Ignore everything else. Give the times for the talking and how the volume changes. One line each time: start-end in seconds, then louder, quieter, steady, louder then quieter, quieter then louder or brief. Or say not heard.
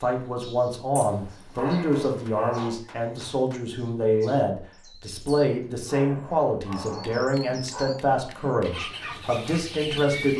0.0-10.3 steady.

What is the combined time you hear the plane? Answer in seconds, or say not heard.
not heard.